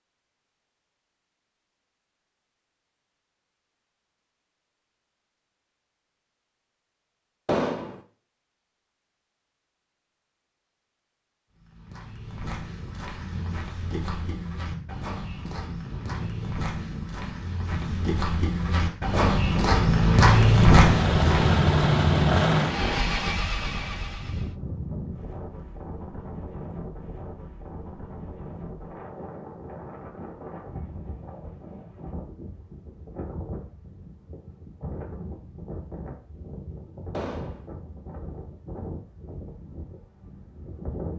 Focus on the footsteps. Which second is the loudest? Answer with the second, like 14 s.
21 s.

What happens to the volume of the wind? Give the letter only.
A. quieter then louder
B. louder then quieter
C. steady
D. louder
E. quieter
B.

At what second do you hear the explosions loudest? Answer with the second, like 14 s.
8 s.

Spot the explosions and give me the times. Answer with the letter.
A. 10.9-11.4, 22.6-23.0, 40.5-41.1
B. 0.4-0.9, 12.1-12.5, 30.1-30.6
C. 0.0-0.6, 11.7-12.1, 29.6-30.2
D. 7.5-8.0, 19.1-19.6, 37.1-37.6
D.